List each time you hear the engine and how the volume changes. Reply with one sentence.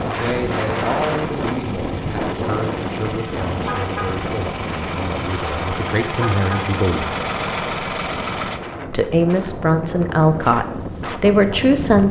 You can hear the engine from 0.0 to 8.6 s, getting louder.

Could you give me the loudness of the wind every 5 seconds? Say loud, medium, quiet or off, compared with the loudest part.
loud, medium, loud.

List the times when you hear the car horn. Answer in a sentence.
The car horn can be heard from 3.6 to 4.1 s and from 6.2 to 6.7 s.